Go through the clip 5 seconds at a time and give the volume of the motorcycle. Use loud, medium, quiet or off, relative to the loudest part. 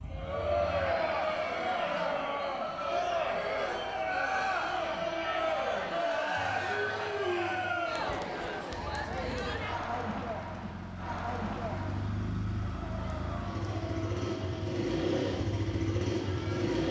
quiet, quiet, medium, loud.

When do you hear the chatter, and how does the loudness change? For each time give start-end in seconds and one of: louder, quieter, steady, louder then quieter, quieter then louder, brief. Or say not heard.
0.1-16.8 quieter.